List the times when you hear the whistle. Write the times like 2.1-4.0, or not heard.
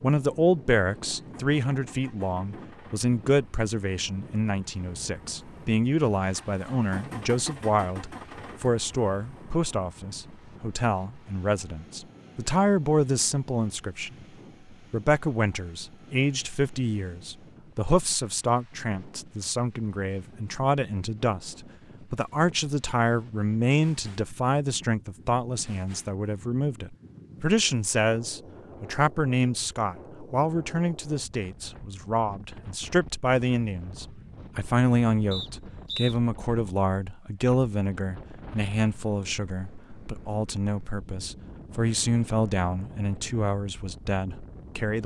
35.3-36.1.